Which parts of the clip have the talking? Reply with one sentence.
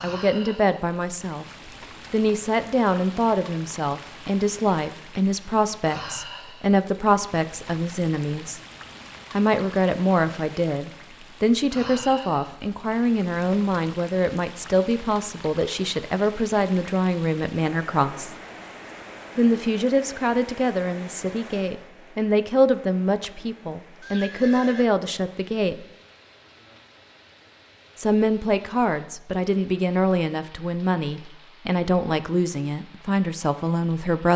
You can hear the talking from 0.0 to 1.4 s, from 2.1 to 8.6 s, from 9.3 to 18.4 s, from 19.4 to 25.8 s and from 27.9 to 34.3 s.